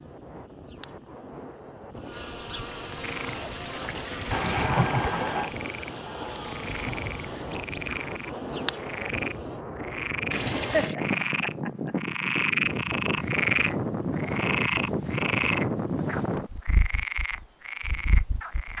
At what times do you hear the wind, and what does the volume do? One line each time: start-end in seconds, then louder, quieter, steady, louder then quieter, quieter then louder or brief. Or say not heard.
0.0-18.7 louder.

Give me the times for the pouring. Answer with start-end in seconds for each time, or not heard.
2.6-4.7, 10.3-10.9.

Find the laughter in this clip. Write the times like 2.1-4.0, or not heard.
4.3-5.5, 10.3-11.9.